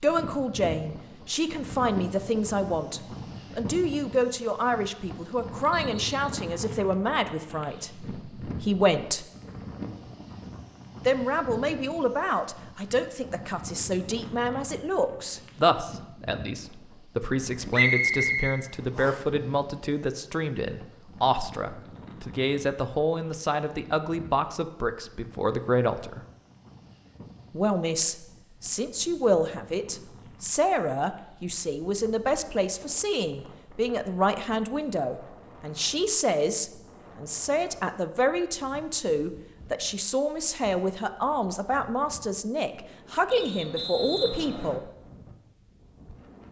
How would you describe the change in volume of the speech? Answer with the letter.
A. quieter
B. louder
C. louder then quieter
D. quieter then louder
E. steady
E.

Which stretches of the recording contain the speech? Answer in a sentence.
You can hear the speech from 0.0 to 9.2 s, from 11.1 to 26.2 s and from 27.5 to 44.9 s.